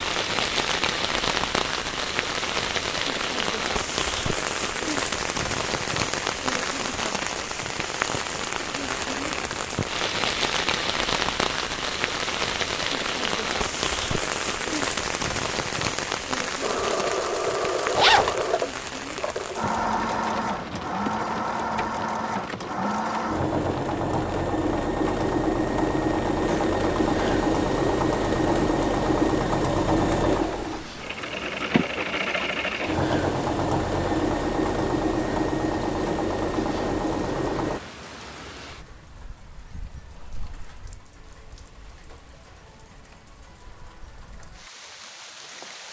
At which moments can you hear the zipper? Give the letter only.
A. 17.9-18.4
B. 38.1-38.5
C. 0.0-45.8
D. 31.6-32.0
A.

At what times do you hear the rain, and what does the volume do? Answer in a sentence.
The rain can be heard from 0.0 to 45.8 s, getting quieter.